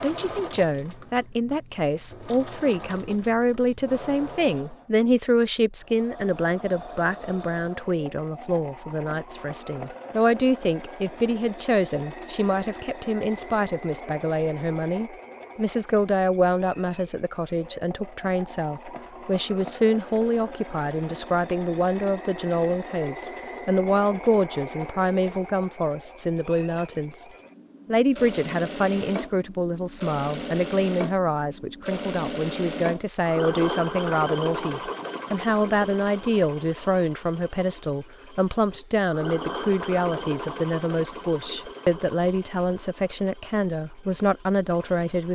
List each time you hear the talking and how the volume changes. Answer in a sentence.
You can hear the talking from 0.0 to 27.2 s, at a steady volume; and from 27.9 to 45.3 s, at a steady volume.